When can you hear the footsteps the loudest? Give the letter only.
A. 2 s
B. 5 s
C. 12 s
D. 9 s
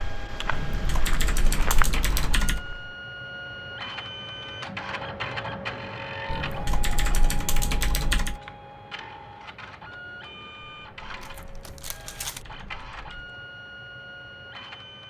A.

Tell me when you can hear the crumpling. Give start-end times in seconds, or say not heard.
11.2-12.4.